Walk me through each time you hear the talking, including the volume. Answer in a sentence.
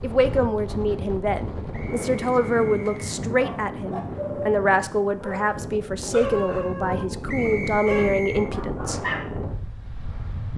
You can hear the talking from 0.0 to 9.0 s, at a steady volume.